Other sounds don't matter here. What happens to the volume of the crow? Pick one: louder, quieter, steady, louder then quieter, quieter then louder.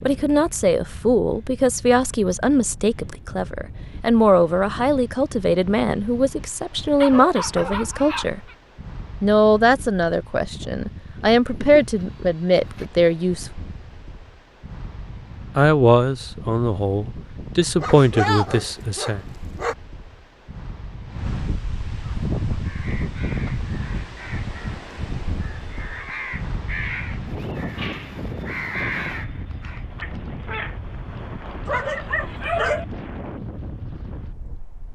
louder.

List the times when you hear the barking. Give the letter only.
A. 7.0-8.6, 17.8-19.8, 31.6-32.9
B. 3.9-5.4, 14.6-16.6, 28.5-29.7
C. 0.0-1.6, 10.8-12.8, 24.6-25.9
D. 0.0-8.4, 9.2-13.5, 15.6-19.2
A.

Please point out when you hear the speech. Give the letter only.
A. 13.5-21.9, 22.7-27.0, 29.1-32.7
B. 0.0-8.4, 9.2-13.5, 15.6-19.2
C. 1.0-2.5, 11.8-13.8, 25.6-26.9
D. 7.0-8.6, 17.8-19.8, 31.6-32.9
B.